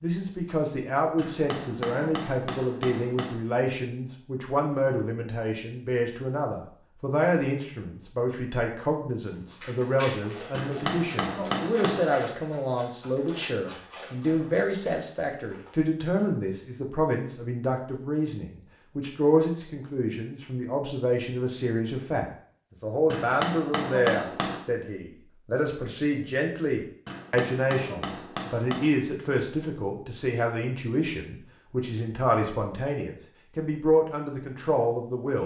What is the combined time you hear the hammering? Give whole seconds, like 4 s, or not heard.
7 s.